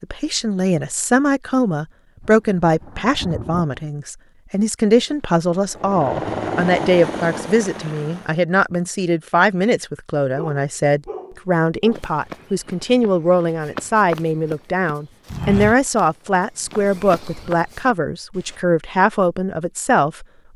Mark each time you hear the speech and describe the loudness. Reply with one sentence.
You can hear the speech from 0.0 to 20.2 s, at a steady volume.